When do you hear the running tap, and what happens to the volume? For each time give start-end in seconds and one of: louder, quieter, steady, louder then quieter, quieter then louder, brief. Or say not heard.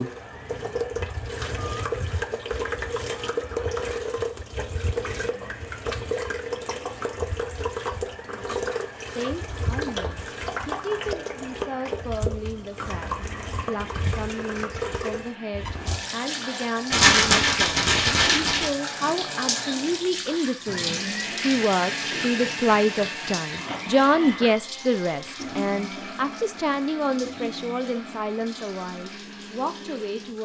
0.0-30.4 quieter.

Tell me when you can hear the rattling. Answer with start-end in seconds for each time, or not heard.
16.9-18.7.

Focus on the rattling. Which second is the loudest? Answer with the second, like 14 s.
17 s.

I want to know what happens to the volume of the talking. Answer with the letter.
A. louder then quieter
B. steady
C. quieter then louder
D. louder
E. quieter
A.